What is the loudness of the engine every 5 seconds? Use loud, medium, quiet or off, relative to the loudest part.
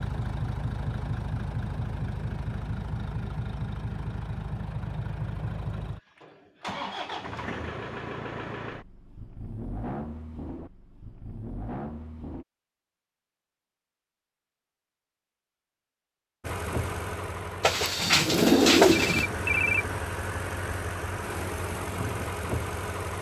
loud, loud, medium, loud, loud.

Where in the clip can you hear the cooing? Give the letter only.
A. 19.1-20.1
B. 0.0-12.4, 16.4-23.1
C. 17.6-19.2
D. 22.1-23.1
C.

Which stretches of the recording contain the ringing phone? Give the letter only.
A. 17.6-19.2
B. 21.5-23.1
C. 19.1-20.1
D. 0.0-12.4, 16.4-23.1
C.